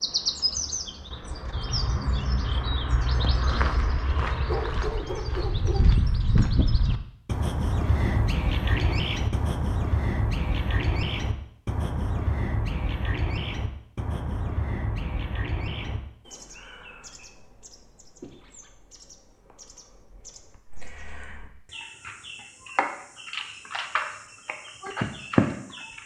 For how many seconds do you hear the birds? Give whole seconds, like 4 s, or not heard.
26 s.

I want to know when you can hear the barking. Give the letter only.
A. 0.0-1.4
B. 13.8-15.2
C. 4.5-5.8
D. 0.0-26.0
C.